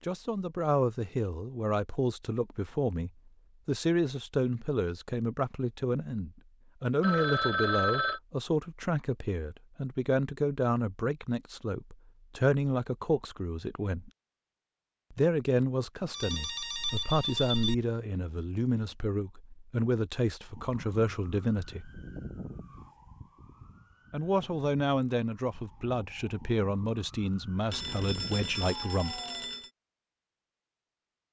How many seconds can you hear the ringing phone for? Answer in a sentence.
You can hear the ringing phone for 5 seconds altogether.